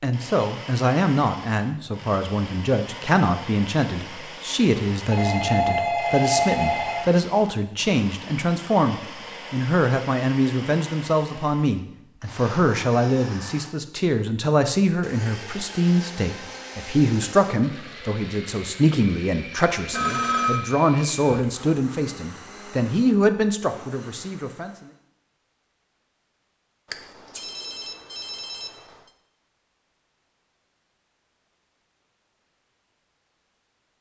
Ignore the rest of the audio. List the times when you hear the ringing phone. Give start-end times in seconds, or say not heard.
5.1-7.0, 19.9-20.6, 26.9-28.8.